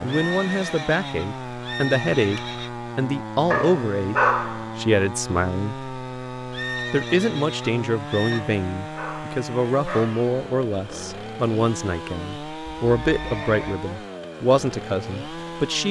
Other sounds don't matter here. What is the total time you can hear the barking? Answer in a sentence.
You can hear the barking for 3 seconds altogether.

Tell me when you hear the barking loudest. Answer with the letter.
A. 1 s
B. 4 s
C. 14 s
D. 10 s
B.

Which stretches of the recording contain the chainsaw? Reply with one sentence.
The chainsaw can be heard from 0.0 to 15.8 s.